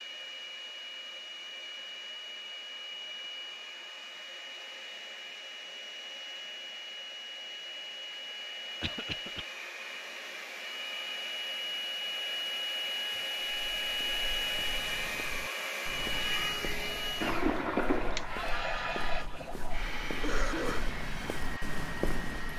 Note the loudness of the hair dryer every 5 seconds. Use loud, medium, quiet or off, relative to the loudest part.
medium, medium, loud, loud, medium.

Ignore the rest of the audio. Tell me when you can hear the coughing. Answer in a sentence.
The coughing can be heard from 8.8 to 9.4 s and from 19.4 to 20.9 s.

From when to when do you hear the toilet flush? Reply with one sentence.
The toilet flush can be heard from 17.2 to 18.4 s.